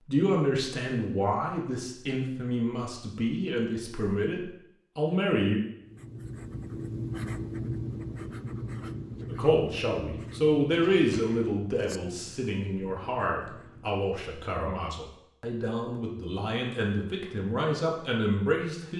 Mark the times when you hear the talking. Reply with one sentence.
The talking can be heard from 0.1 to 5.6 s and from 9.3 to 18.9 s.